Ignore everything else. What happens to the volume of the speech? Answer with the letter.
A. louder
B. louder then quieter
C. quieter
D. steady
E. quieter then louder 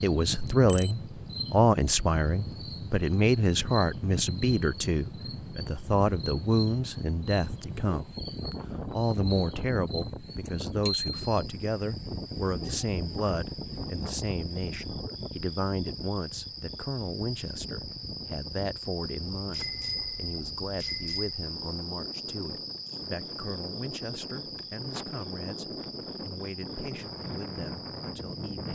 C.